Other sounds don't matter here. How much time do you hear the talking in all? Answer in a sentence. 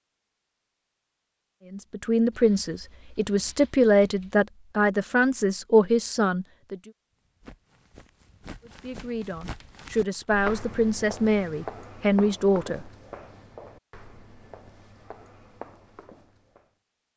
The talking can be heard for 9 seconds in total.